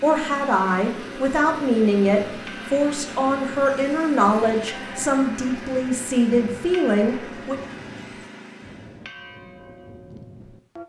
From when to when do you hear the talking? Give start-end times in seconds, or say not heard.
0.0-7.5.